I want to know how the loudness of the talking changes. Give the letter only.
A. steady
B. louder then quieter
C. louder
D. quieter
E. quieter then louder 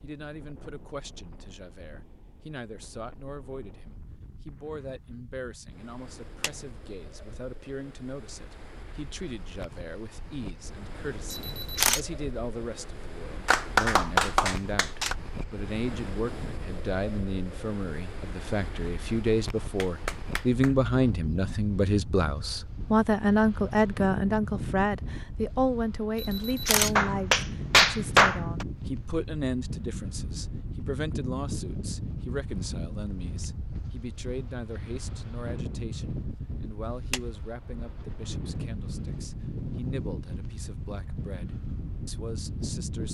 B.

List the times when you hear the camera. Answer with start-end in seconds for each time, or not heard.
11.3-12.0, 26.1-26.9.